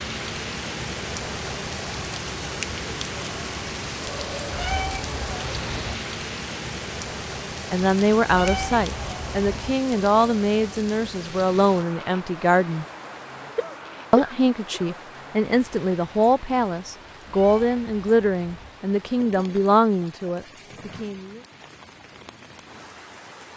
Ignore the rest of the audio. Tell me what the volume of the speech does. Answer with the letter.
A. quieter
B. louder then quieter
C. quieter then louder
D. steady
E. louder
D.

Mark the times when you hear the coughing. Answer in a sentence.
You can hear the coughing from 13.6 to 14.9 s.